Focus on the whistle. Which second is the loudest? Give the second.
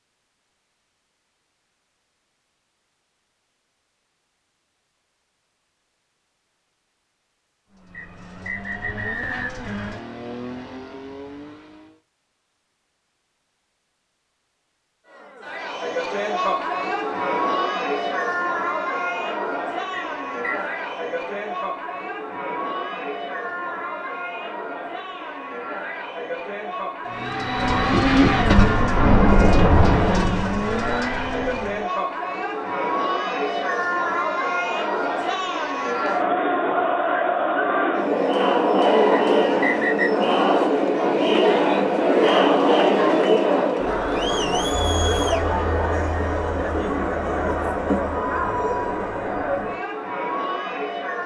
40 s.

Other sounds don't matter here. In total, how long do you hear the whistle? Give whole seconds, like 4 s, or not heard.
3 s.